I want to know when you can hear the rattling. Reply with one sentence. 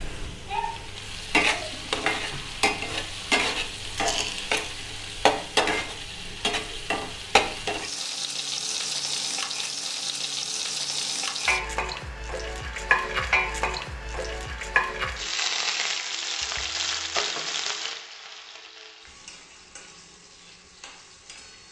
The rattling can be heard from 4.0 to 4.7 s.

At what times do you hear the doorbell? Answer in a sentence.
You can't hear the doorbell here.